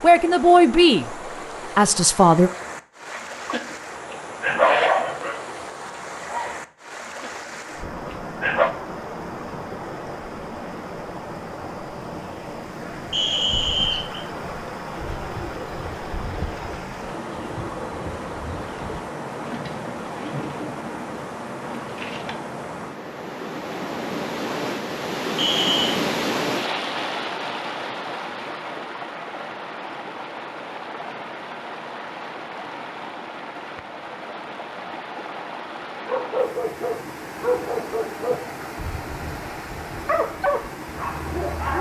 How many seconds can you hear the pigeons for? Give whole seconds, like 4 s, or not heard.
7 s.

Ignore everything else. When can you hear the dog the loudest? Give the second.
5 s.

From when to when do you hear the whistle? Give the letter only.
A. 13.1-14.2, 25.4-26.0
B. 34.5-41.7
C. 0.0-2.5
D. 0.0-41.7
A.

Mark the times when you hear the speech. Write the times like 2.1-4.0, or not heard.
0.0-2.5.